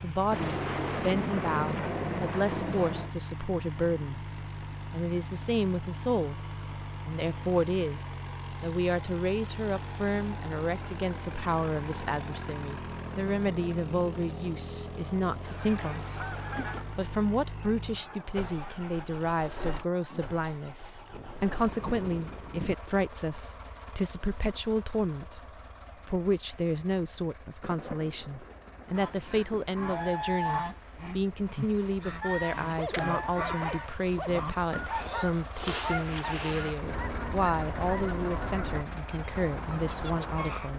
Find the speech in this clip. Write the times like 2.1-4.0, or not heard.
0.0-4.3, 4.9-40.7.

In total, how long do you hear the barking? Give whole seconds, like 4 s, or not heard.
2 s.